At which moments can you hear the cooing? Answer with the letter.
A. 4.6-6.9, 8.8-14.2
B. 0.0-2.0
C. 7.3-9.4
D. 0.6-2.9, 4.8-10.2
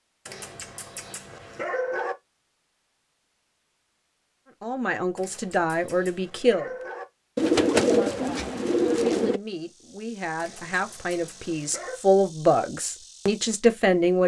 C.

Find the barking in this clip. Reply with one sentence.
You can hear the barking from 0.2 to 2.1 s, from 5.2 to 7.0 s and from 10.3 to 12.0 s.